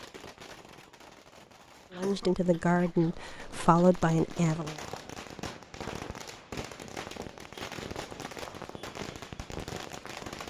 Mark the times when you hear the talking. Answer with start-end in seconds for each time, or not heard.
1.9-4.8.